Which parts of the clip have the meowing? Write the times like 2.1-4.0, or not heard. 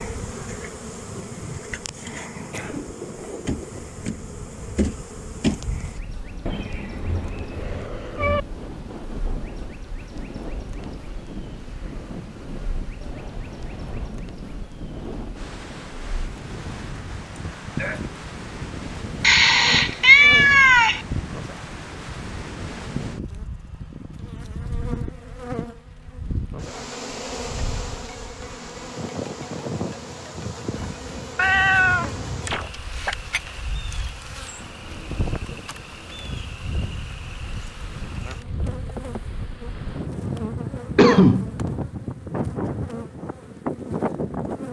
6.5-8.4, 19.2-21.0, 31.4-33.1.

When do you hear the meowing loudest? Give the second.
20 s.